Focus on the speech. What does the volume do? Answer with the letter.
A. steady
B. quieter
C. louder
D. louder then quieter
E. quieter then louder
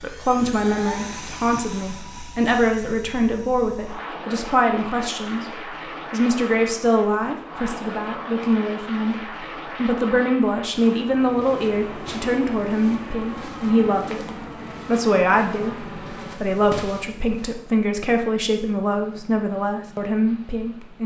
A.